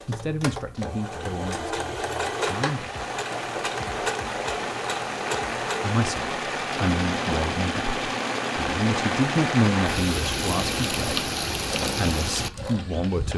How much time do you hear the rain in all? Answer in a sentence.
You can hear the rain for 11 seconds altogether.